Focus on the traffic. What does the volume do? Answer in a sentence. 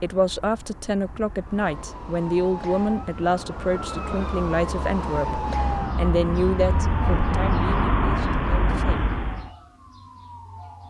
The volume of the traffic goes up.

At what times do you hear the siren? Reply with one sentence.
You can hear the siren from 1.4 to 10.8 s.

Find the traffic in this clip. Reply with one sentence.
You can hear the traffic from 0.0 to 9.5 s.